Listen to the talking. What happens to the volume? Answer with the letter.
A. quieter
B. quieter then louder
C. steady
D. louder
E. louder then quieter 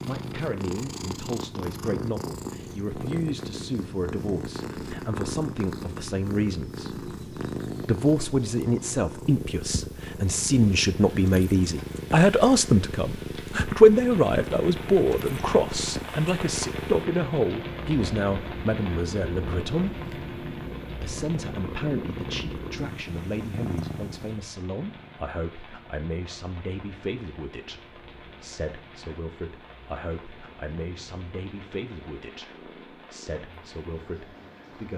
E.